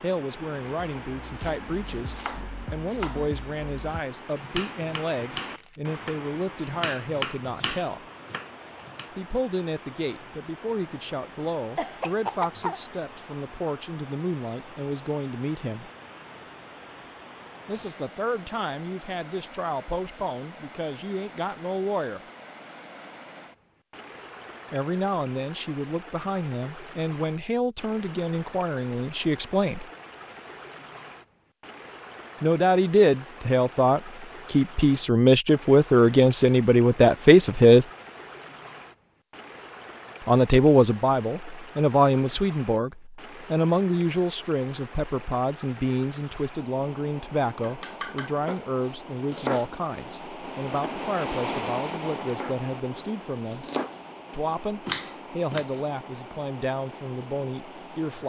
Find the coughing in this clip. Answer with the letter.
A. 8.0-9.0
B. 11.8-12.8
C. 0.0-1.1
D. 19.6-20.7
B.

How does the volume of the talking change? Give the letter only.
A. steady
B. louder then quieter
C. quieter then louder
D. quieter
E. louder
B.